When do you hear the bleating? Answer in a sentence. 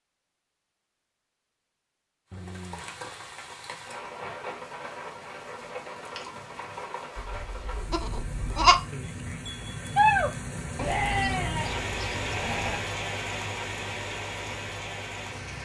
The bleating can be heard from 7.4 to 12.8 s.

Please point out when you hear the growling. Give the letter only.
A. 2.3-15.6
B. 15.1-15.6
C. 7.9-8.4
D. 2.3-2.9
D.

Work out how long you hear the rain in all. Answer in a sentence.
The rain can be heard for 13 seconds in total.